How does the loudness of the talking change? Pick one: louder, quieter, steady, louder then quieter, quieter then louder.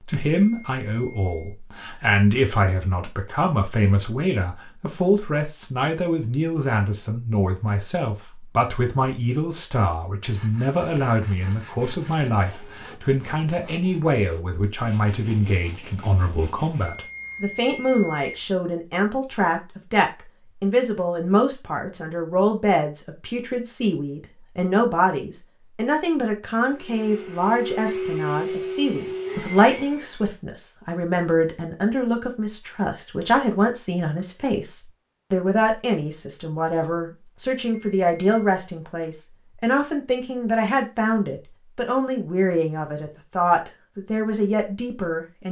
steady.